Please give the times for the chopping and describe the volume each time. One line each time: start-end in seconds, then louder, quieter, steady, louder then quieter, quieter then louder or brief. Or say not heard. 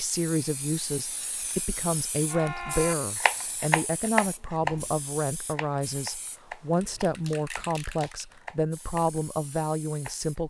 2.2-9.2 quieter
9.9-10.4 brief.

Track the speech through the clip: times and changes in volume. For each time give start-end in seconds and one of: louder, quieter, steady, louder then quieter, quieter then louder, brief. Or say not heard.
0.0-10.4 steady.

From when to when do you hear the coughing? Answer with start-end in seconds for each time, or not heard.
not heard.